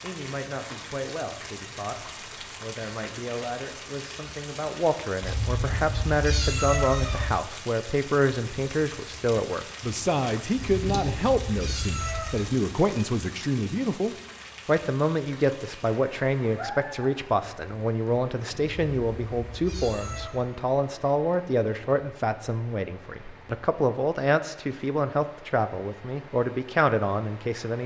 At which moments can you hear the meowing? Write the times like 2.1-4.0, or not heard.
5.2-7.2, 10.6-12.4, 18.6-20.4.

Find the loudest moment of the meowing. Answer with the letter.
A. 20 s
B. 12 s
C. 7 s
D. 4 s
C.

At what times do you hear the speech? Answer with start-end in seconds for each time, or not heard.
0.0-27.8.